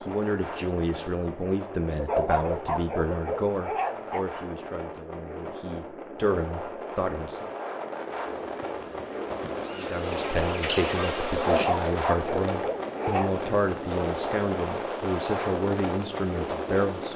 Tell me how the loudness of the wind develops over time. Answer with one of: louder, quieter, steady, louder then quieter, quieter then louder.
louder.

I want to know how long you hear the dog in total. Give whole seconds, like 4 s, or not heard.
4 s.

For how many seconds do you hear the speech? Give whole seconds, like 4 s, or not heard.
15 s.